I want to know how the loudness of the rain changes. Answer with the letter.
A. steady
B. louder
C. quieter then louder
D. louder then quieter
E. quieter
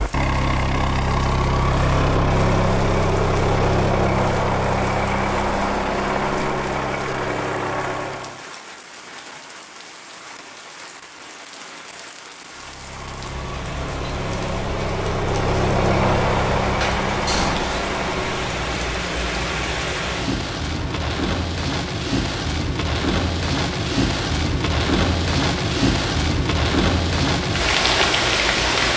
B.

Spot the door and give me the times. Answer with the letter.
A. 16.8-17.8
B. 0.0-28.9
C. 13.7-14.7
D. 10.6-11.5
A.